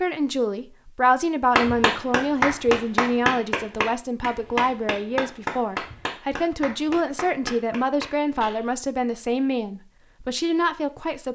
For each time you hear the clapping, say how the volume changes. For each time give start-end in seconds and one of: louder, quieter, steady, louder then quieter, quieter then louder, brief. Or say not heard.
1.6-8.7 quieter.